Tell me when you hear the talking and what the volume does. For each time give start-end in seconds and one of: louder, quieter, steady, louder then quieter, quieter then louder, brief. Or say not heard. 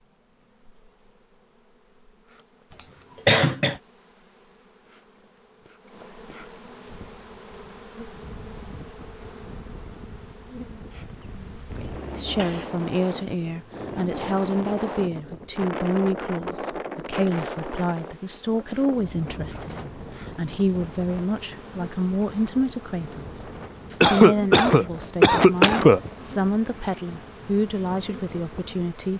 12.2-29.1 steady.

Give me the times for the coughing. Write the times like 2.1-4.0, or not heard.
2.7-3.8, 11.0-12.7, 24.0-26.1.